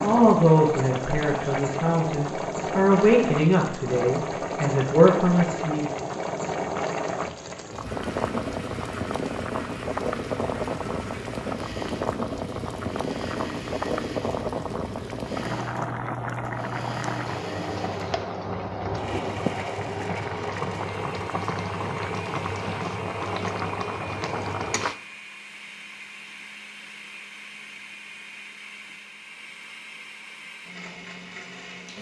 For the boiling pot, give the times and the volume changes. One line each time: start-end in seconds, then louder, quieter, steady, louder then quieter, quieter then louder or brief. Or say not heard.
0.0-25.0 steady.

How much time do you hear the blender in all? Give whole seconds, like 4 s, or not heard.
24 s.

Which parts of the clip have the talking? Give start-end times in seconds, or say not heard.
0.0-5.9.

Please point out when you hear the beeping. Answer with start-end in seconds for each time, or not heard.
not heard.